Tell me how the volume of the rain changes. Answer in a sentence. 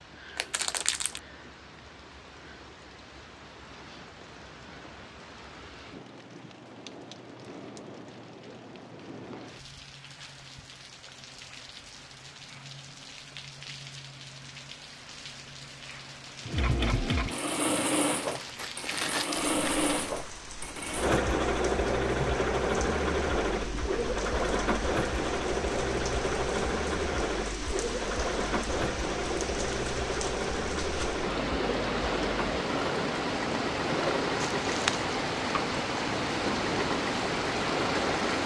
The volume of the rain goes up.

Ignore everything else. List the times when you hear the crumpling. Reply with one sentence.
The crumpling can be heard from 0.3 to 1.2 s, from 18.2 to 19.9 s and from 34.4 to 35.1 s.